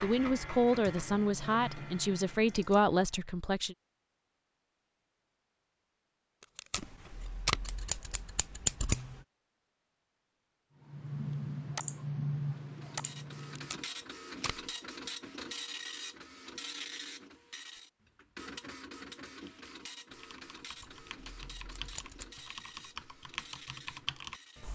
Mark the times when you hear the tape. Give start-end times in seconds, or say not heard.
6.4-7.7, 13.6-14.7.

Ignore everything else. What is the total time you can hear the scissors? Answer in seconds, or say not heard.
4 s.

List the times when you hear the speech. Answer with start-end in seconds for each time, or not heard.
0.0-3.8.